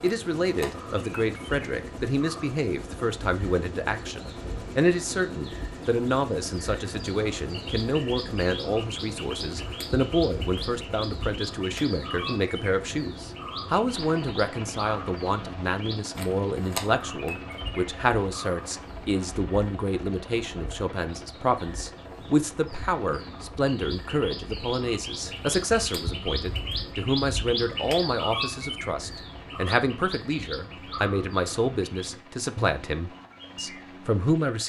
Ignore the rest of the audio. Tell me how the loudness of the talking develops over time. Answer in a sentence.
The loudness of the talking stays about the same.